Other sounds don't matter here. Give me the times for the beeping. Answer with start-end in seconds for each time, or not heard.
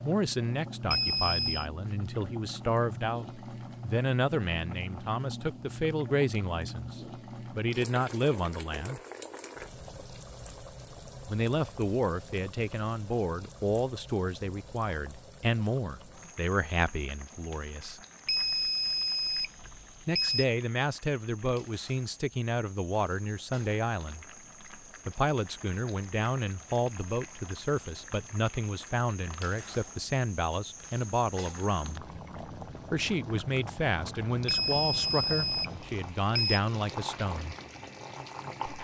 0.9-1.6, 18.2-20.4, 34.5-36.6.